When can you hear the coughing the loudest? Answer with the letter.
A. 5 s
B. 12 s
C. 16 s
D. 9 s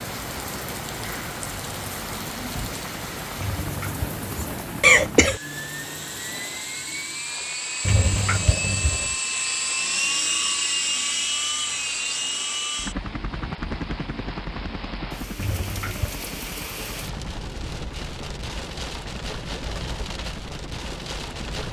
A.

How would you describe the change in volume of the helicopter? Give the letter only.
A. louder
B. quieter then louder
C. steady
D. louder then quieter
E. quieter
D.